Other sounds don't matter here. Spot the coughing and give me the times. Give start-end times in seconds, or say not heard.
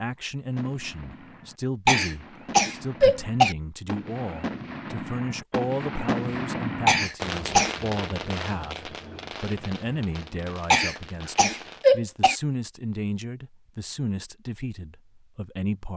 1.9-3.5, 6.8-7.8, 10.7-12.3.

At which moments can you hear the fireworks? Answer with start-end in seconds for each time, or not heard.
0.5-11.8.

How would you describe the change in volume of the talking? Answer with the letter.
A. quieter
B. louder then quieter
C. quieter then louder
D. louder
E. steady
E.